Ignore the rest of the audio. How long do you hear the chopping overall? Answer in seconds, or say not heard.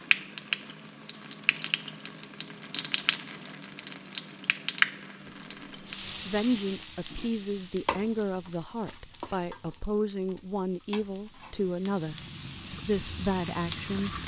not heard.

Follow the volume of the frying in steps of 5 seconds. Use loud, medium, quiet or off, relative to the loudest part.
loud, medium, medium.